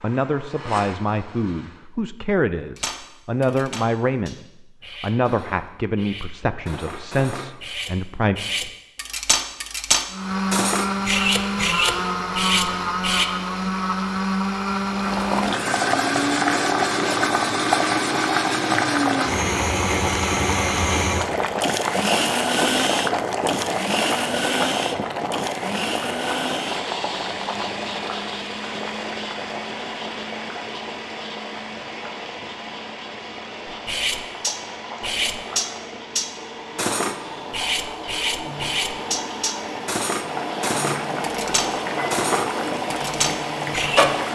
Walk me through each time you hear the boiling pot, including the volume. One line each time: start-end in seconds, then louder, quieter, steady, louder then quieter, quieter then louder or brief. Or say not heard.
14.8-44.3 quieter then louder.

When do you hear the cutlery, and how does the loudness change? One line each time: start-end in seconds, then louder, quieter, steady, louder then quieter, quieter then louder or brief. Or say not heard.
2.8-13.2 louder
33.6-44.1 steady.